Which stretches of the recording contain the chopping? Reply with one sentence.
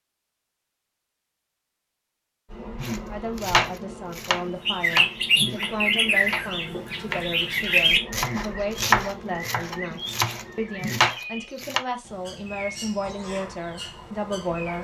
The chopping can be heard from 2.8 to 11.8 s.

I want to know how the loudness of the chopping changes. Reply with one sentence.
The loudness of the chopping goes down, then up.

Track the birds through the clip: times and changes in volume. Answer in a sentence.
The birds can be heard from 4.7 to 14.7 s, getting quieter.